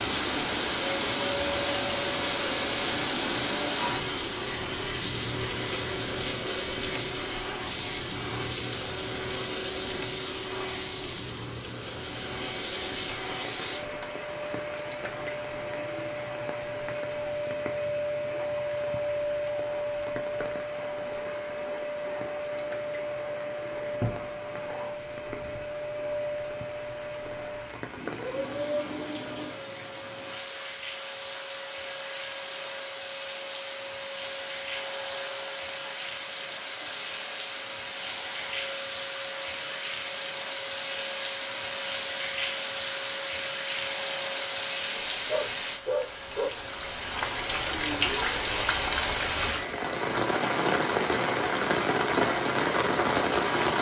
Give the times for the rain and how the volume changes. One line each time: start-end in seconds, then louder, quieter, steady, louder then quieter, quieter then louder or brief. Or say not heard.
0.0-53.7 quieter then louder.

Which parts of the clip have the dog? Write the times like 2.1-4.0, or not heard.
45.0-46.5.